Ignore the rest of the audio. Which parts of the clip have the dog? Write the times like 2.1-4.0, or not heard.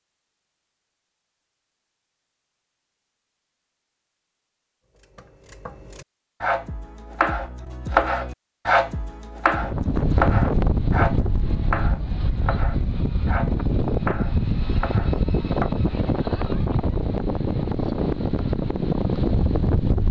not heard.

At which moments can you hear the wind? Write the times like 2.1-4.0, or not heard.
9.6-20.0.